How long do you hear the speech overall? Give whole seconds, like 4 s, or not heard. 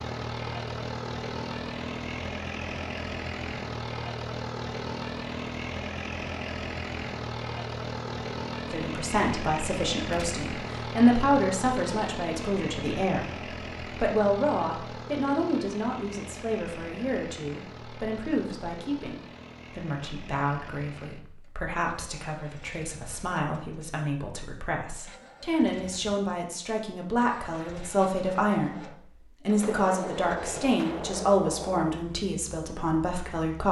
25 s.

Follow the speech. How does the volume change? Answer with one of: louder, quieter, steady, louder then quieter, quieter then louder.
quieter then louder.